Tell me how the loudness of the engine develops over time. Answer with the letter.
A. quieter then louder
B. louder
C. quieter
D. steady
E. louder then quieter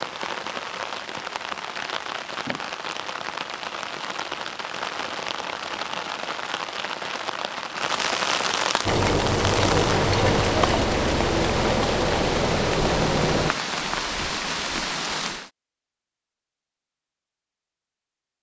D.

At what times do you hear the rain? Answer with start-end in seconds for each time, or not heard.
0.0-15.5.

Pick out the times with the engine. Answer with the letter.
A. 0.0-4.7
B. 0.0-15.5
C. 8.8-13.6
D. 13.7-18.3
C.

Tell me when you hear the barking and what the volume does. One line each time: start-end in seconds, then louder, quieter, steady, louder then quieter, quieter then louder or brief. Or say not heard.
not heard.